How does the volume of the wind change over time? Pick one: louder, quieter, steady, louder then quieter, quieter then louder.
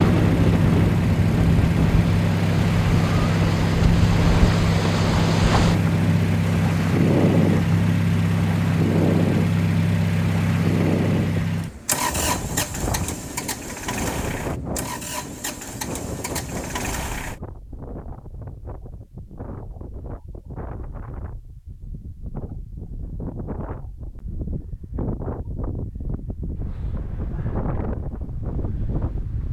quieter then louder.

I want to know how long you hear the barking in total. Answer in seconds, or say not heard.
not heard.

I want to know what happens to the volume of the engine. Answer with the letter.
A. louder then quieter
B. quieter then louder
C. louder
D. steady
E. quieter
E.